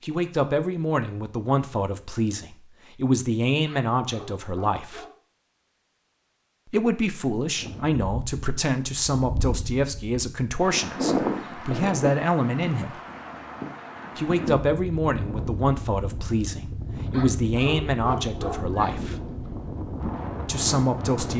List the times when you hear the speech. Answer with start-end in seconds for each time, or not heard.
0.0-5.0, 6.7-13.0, 14.2-19.1, 20.4-21.3.